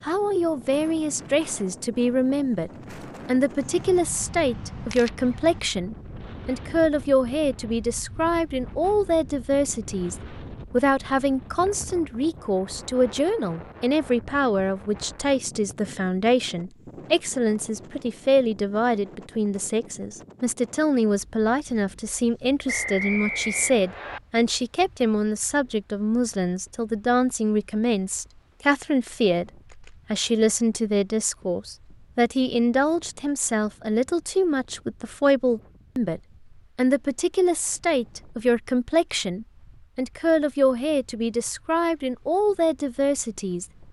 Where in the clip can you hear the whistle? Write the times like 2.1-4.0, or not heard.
22.6-24.2.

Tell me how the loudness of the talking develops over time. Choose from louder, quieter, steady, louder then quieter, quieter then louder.
steady.